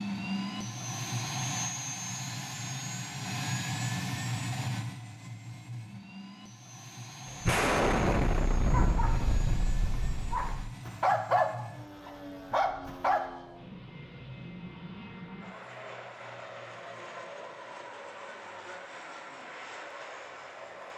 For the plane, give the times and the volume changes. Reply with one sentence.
You can hear the plane from 0.0 to 20.9 s, getting quieter.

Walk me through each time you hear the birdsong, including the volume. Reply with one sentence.
The birdsong can't be heard in this clip.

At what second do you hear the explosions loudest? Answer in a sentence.
The loudest moment of the explosions is at 8 seconds.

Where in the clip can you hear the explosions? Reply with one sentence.
You can hear the explosions from 7.5 to 10.7 s.